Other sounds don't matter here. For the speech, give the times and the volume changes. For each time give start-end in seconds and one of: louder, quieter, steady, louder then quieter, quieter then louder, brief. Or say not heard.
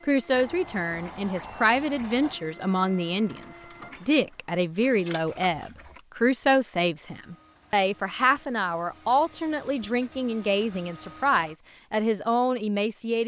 0.1-13.2 steady.